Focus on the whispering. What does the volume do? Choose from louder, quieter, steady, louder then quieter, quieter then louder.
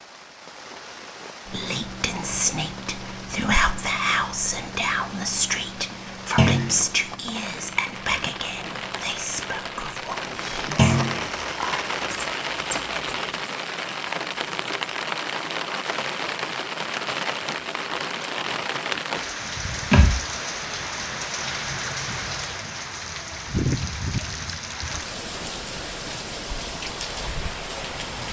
quieter.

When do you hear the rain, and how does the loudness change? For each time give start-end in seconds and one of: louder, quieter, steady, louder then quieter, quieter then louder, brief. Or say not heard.
0.0-28.2 louder.